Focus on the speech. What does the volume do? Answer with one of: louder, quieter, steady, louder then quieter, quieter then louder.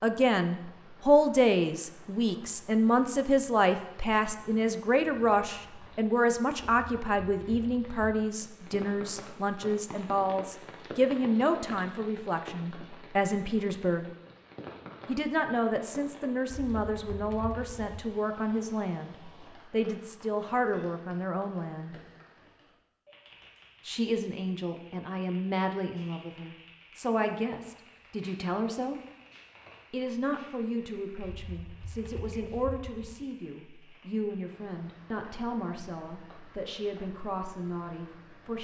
quieter.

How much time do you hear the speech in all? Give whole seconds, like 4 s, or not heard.
35 s.